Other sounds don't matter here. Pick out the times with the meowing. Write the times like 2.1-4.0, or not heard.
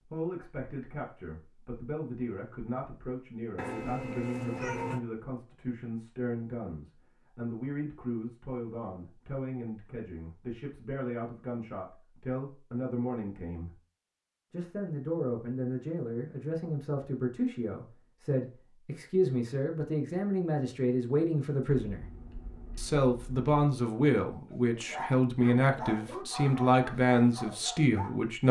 3.5-5.0, 21.9-23.5.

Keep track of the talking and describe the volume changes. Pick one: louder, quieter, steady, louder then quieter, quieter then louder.
louder.